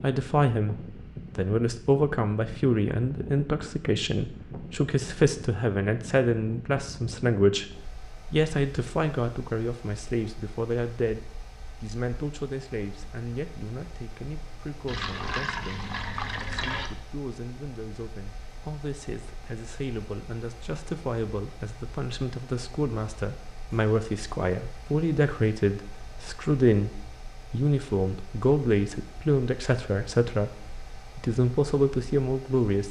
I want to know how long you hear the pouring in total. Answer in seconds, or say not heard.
2 s.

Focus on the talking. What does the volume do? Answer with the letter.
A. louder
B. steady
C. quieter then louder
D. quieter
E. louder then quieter
C.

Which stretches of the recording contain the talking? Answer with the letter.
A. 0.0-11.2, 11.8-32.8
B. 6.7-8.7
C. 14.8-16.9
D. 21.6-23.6
A.